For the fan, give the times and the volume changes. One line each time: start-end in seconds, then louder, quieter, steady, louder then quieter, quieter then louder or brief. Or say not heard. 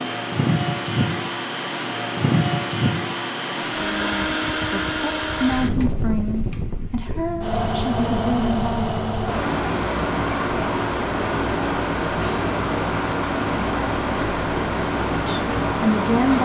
0.0-16.3 steady.